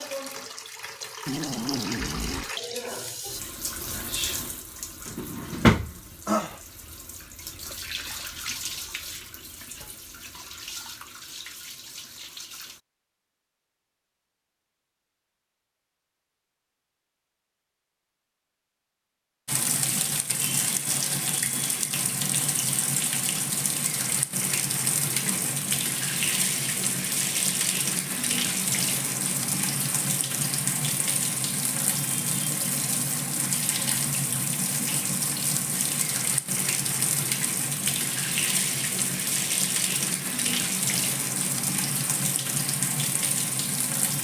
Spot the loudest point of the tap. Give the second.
6 s.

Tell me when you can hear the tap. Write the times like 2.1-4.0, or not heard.
0.0-12.8, 19.4-44.1.